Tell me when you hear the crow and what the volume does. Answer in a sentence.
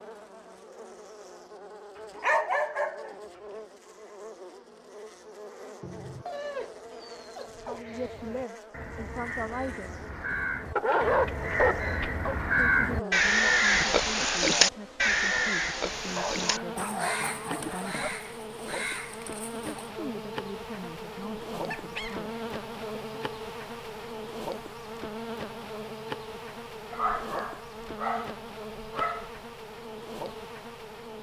The crow can be heard from 7.8 to 19.9 s, getting louder then quieter.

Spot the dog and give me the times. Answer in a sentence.
You can hear the dog from 2.1 to 3.1 s, from 5.8 to 7.8 s, from 10.8 to 12.3 s, from 16.1 to 18.1 s, from 21.6 to 22.2 s and from 26.9 to 29.4 s.